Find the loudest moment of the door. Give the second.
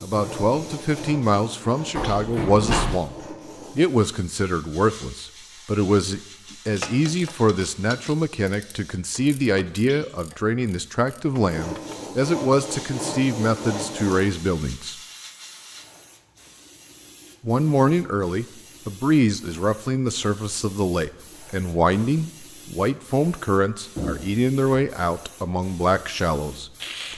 3 s.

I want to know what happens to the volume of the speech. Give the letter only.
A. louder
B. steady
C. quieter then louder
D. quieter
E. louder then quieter
B.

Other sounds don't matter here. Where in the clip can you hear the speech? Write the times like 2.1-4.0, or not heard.
0.0-14.9, 17.4-27.1.